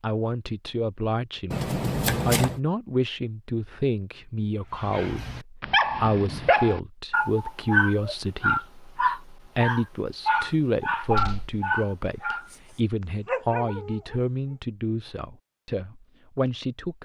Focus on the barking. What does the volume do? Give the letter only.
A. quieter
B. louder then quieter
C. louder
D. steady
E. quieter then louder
A.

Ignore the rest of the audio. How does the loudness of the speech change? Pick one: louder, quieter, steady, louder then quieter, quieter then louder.
steady.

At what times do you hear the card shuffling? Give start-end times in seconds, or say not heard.
1.5-2.6.